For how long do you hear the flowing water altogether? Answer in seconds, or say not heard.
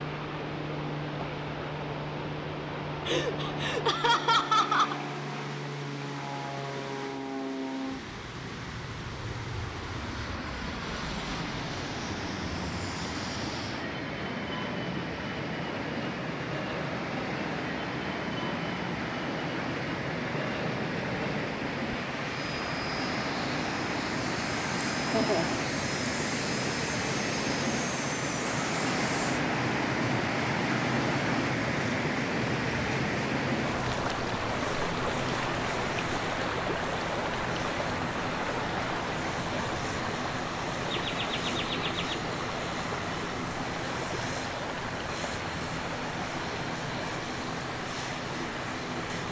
49 s.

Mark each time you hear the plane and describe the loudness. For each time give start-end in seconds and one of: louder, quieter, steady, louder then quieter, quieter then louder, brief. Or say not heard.
0.0-49.2 steady.